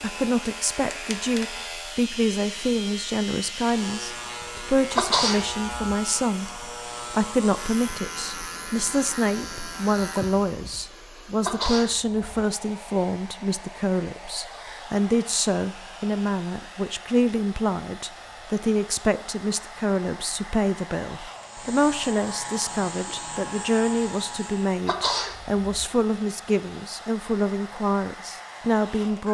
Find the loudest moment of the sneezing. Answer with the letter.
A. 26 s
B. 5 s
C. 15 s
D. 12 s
B.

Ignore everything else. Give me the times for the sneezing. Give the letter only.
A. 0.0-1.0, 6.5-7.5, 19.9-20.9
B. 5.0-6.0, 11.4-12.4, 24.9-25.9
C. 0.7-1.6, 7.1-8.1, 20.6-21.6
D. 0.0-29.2
B.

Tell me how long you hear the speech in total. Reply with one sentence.
You can hear the speech for 29 seconds altogether.